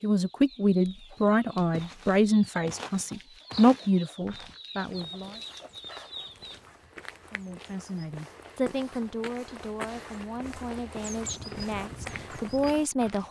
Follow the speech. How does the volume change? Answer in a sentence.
The loudness of the speech goes down, then up.